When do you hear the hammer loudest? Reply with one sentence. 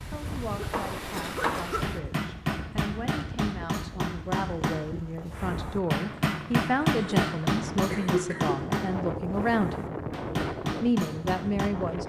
The volume of the hammer peaks at 7 seconds.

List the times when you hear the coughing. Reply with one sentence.
You can hear the coughing from 0.6 to 1.9 s and from 7.0 to 8.6 s.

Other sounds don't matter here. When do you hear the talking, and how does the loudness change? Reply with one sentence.
You can hear the talking from 0.1 to 9.9 s, getting louder; and briefly from 10.8 to 12.0 s.